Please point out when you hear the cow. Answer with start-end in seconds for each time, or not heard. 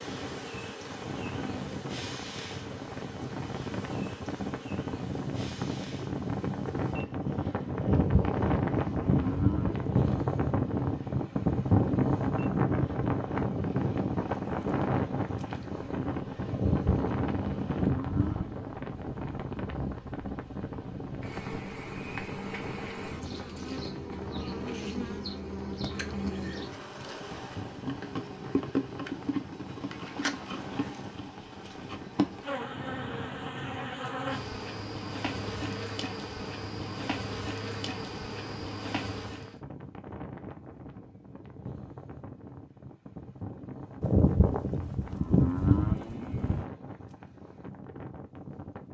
7.8-9.9, 16.5-18.5, 44.0-46.6.